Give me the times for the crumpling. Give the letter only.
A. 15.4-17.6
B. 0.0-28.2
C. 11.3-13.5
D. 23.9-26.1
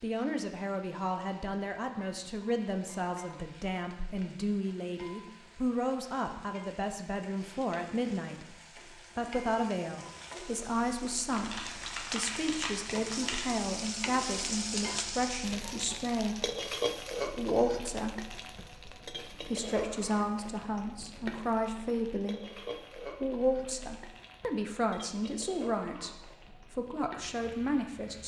C.